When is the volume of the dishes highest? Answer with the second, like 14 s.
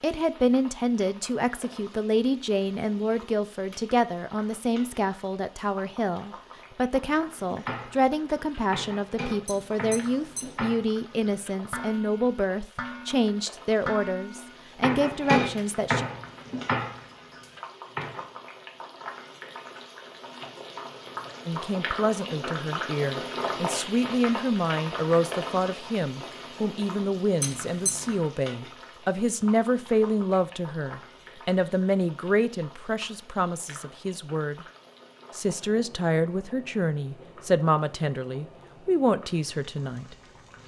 15 s.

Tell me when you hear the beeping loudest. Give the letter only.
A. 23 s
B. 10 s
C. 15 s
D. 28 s
D.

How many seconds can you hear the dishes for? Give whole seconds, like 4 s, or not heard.
11 s.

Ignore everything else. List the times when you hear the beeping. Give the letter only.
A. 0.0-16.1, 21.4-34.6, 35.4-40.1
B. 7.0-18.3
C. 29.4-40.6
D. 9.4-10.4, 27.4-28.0
D.